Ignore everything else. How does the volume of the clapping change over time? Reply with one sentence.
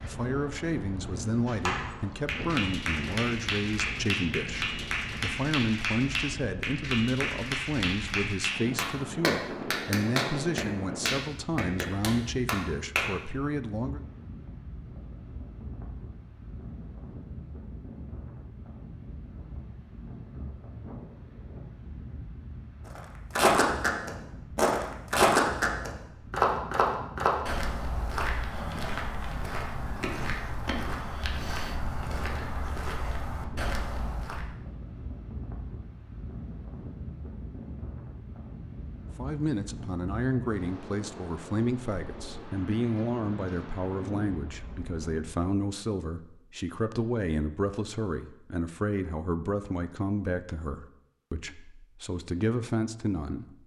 The loudness of the clapping stays about the same.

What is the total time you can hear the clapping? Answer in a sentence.
You can hear the clapping for 12 seconds altogether.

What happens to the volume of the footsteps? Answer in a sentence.
The loudness of the footsteps goes down.